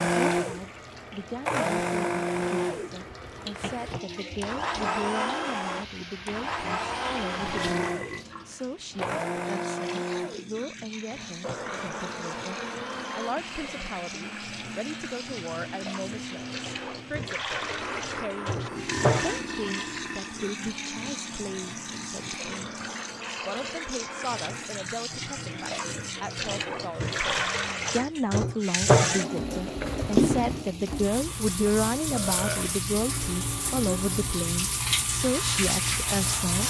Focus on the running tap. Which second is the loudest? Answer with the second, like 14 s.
29 s.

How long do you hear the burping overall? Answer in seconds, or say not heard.
3 s.